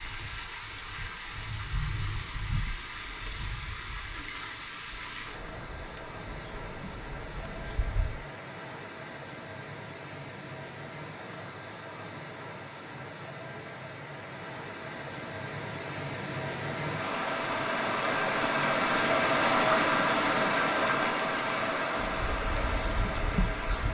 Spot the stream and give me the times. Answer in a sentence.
You can hear the stream from 0.0 to 23.8 s.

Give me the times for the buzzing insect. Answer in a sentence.
You can hear the buzzing insect from 0.0 to 8.2 s and from 22.2 to 23.8 s.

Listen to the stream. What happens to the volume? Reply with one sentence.
The loudness of the stream goes up.